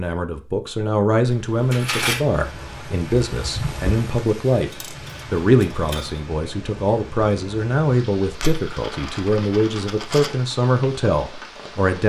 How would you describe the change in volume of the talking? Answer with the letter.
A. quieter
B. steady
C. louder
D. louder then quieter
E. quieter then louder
B.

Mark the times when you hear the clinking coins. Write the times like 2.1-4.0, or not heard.
1.2-2.2, 4.7-6.2, 8.3-10.3.